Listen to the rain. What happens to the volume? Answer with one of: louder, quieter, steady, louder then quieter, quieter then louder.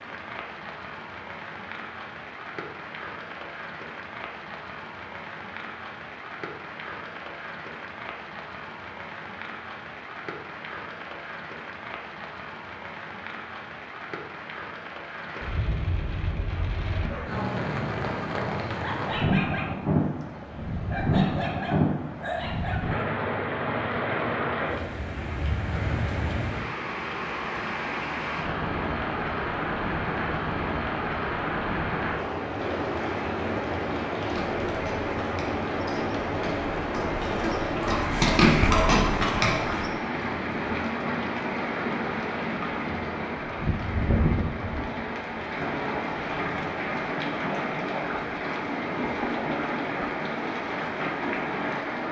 louder.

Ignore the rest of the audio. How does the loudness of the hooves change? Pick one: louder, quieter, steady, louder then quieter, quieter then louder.
louder.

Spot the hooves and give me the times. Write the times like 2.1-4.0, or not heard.
34.3-39.9.